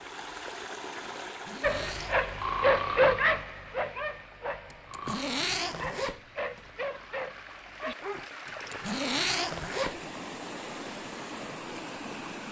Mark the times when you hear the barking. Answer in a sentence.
The barking can be heard from 1.6 to 8.3 s.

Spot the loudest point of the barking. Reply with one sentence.
The volume of the barking peaks at 3 seconds.